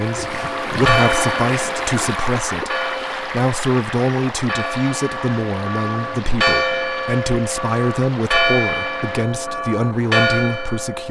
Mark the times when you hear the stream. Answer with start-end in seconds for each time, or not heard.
0.0-9.2.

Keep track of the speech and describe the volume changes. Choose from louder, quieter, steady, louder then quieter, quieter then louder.
steady.